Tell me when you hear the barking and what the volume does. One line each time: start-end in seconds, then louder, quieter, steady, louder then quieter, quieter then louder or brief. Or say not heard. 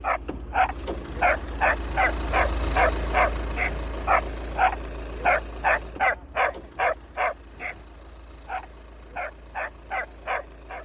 0.0-7.8 steady
8.4-10.7 brief.